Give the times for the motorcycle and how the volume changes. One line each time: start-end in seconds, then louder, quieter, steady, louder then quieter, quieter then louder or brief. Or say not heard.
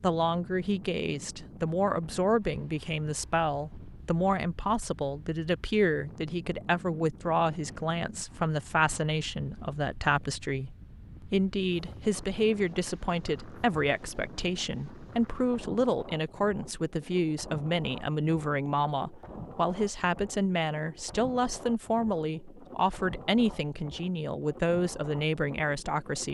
not heard.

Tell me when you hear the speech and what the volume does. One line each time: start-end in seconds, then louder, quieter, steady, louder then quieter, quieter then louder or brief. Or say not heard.
0.0-26.3 steady.